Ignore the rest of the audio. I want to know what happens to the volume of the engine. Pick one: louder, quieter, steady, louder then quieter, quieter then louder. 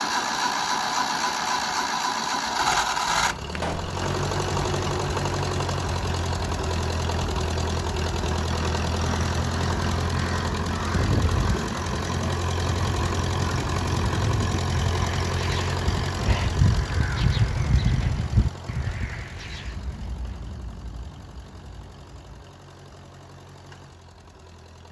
quieter.